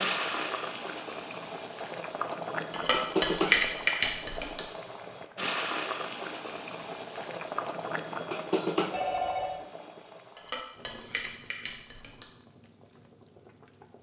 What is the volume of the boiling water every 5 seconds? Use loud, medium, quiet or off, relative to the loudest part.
loud, loud, quiet.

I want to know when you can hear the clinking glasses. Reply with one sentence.
The clinking glasses can be heard from 2.7 to 4.6 s and from 10.3 to 12.2 s.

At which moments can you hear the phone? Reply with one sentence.
The phone can be heard from 8.9 to 9.6 s.